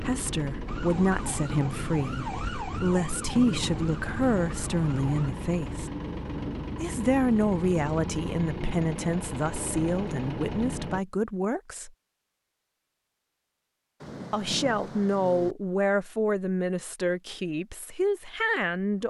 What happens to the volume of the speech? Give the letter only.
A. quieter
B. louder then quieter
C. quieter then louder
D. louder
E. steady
E.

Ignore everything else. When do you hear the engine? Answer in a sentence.
The engine can be heard from 0.0 to 11.1 s.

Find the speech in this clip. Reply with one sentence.
The speech can be heard from 0.0 to 5.9 s, from 6.8 to 11.9 s and from 14.3 to 19.0 s.